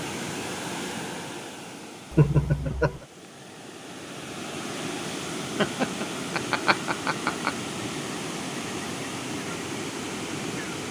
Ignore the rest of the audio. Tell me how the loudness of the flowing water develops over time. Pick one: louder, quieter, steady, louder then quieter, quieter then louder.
quieter then louder.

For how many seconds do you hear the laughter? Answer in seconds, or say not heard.
3 s.